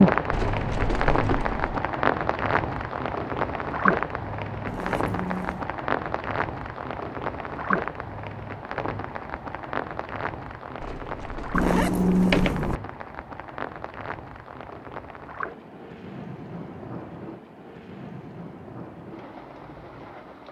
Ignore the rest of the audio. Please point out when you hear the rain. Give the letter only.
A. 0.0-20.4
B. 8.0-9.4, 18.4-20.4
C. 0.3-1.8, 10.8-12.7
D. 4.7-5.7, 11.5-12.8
A.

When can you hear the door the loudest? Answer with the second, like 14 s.
12 s.